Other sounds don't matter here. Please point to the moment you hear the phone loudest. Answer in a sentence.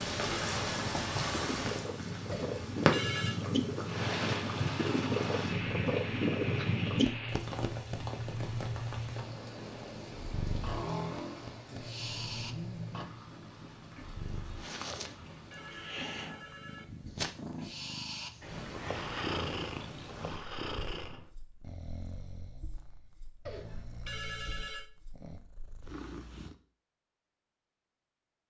The volume of the phone peaks at 3 seconds.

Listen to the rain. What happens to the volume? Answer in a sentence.
The loudness of the rain goes down.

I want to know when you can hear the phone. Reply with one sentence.
You can hear the phone from 2.3 to 3.4 s, from 14.8 to 16.9 s and from 23.4 to 24.9 s.